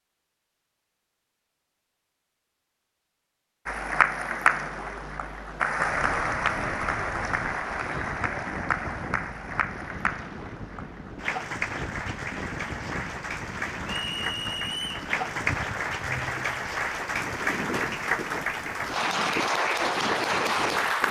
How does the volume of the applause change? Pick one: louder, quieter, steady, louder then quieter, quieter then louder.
quieter then louder.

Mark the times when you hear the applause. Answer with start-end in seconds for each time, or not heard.
3.6-21.0.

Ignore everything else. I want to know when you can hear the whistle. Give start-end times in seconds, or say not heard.
13.8-15.1.